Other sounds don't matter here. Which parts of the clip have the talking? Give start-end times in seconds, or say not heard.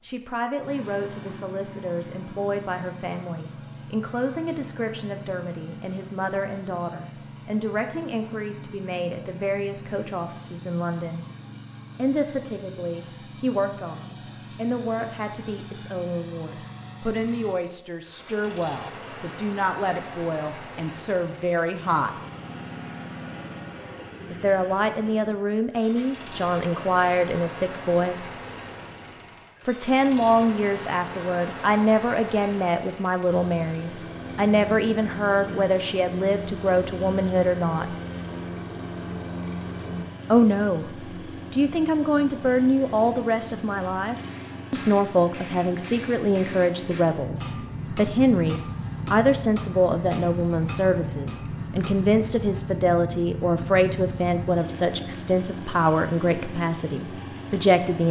0.0-11.2, 11.9-22.1, 24.3-28.4, 29.6-37.9, 40.3-40.9, 41.5-58.0.